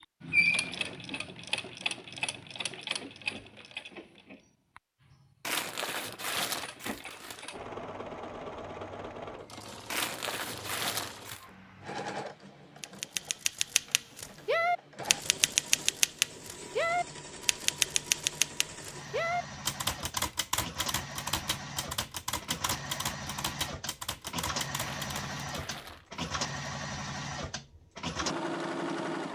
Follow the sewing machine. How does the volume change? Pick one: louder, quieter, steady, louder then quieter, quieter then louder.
quieter then louder.